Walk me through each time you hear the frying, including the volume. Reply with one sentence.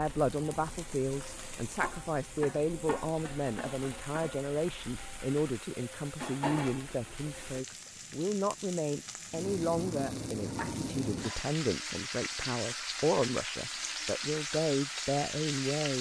The frying can be heard from 0.0 to 15.9 s, getting louder.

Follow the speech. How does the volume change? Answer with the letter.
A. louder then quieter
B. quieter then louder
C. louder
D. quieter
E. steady
E.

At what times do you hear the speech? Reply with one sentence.
You can hear the speech from 0.0 to 15.9 s.